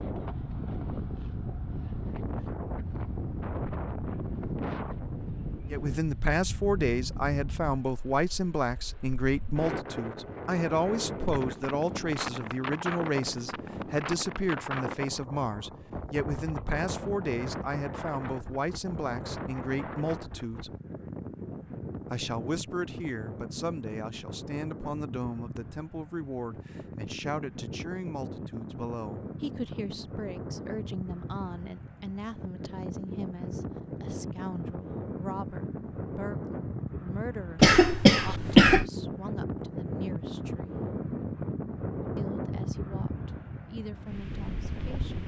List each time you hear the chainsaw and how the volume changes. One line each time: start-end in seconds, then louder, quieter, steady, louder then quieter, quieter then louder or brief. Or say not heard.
not heard.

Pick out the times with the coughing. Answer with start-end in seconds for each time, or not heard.
37.6-38.9.